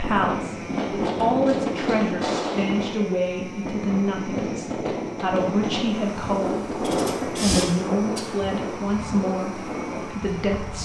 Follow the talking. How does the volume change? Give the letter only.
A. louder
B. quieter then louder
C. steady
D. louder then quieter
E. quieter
C.